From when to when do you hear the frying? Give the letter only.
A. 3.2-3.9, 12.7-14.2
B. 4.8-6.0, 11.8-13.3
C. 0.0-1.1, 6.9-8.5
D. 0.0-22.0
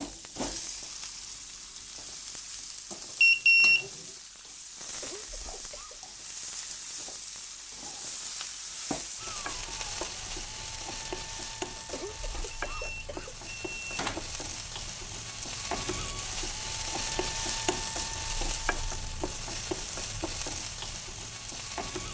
D.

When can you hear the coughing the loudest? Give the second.
12 s.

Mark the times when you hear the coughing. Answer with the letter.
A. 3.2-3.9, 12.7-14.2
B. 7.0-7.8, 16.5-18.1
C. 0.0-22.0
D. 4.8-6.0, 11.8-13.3
D.